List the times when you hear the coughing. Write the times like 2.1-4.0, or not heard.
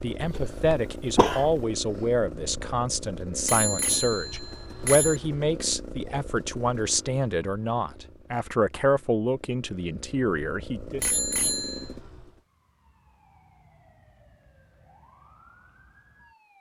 0.2-1.6.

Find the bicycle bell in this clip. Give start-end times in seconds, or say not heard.
3.5-5.2, 11.0-11.9.